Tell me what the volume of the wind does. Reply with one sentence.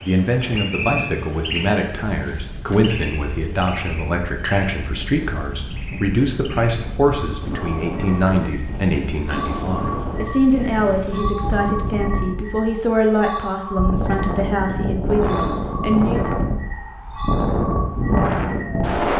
The loudness of the wind goes up.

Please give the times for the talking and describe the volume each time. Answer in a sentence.
You can hear the talking from 0.0 to 16.3 s, at a steady volume.